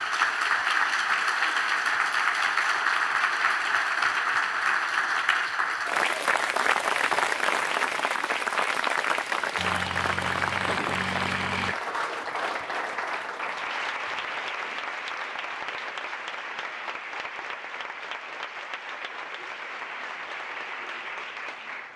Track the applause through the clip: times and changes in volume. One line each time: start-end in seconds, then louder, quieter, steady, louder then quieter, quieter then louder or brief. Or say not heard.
0.0-21.9 quieter.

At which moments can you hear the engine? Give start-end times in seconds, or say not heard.
9.6-11.8.